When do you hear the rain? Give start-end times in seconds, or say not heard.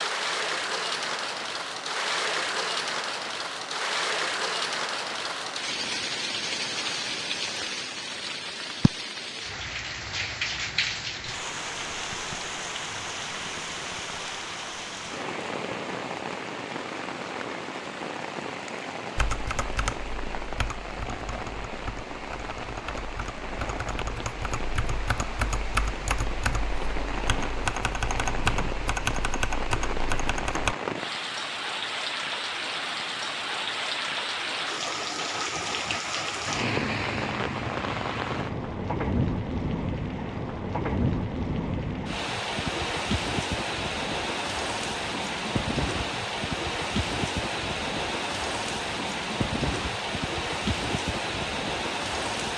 0.0-52.5.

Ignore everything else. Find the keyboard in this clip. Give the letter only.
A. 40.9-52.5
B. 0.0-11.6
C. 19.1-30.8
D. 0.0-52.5
C.